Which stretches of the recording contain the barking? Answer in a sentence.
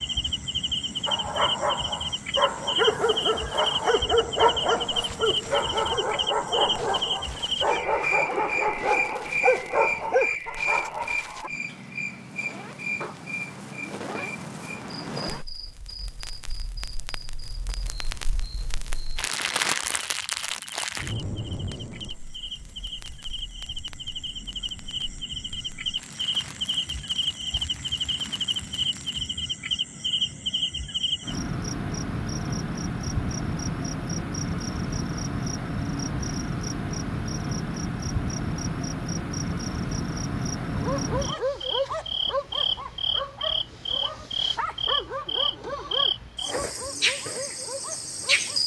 The barking can be heard from 1.1 to 11.5 s and from 40.7 to 48.6 s.